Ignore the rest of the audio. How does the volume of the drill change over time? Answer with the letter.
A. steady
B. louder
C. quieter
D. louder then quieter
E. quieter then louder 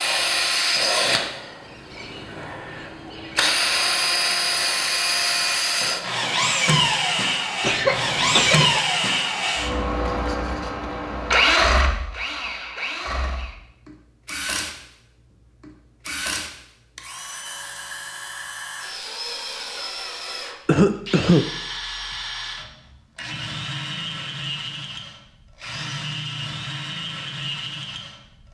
C.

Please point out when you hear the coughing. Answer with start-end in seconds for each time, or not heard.
7.6-8.8, 20.6-21.5.